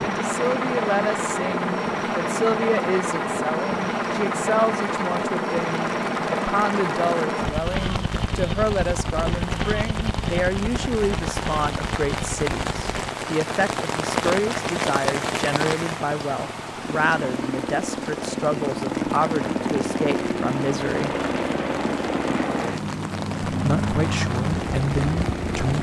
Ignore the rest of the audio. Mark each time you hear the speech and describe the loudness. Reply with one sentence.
You can hear the speech from 0.0 to 21.1 s, at a steady volume; and briefly from 23.5 to 25.7 s.